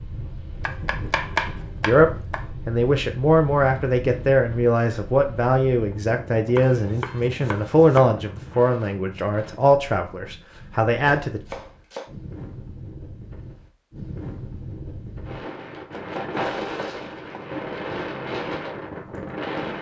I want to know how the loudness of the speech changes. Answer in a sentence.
The loudness of the speech stays about the same.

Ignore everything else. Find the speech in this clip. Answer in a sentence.
You can hear the speech from 1.9 to 11.4 s.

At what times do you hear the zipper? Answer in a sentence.
You can't hear the zipper here.